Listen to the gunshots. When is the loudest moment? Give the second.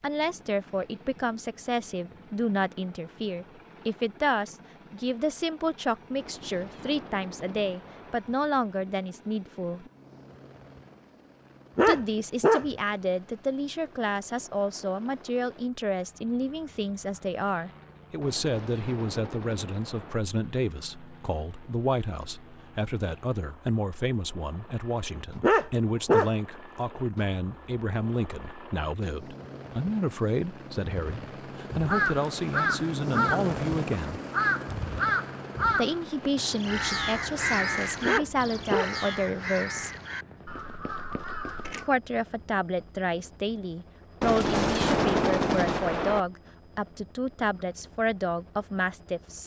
45 s.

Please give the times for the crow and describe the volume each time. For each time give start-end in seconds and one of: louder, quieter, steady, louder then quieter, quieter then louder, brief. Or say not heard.
31.9-41.9 quieter.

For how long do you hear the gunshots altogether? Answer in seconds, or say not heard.
6 s.